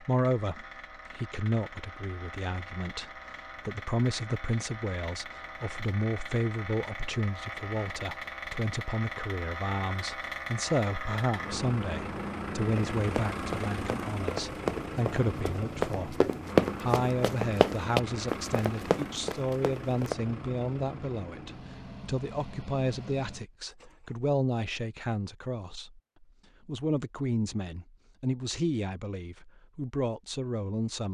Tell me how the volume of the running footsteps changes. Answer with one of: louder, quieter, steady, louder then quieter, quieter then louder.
louder then quieter.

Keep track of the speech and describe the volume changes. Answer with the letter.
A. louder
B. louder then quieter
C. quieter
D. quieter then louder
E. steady
E.